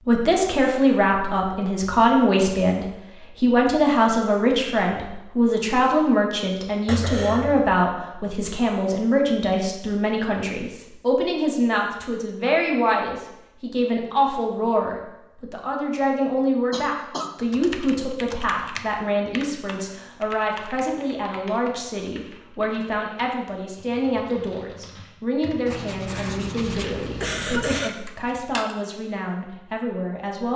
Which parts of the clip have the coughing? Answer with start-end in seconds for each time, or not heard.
6.8-7.7, 16.7-17.3, 26.1-27.9.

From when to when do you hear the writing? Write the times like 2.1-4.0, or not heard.
25.6-27.9.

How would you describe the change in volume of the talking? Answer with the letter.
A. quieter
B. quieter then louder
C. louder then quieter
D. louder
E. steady
A.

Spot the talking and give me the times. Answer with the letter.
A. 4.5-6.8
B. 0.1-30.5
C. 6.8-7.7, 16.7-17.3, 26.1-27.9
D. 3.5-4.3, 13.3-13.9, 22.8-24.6
B.